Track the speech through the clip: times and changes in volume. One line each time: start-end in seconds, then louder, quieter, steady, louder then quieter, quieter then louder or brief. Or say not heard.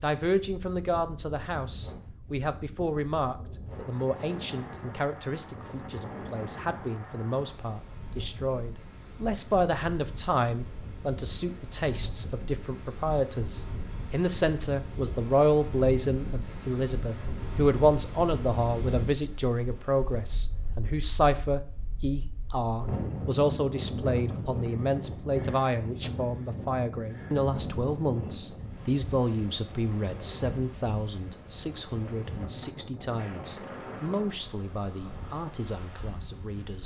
0.0-36.8 louder then quieter.